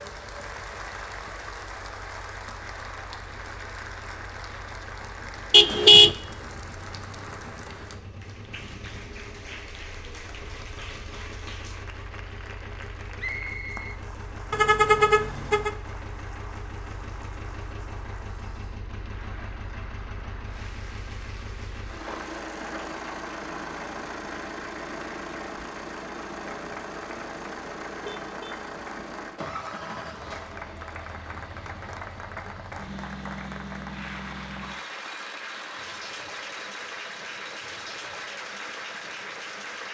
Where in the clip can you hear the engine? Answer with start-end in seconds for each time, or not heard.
0.0-39.8.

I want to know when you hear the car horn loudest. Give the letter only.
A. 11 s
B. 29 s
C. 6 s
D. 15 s
C.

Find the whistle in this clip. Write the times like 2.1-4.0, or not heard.
13.2-14.0.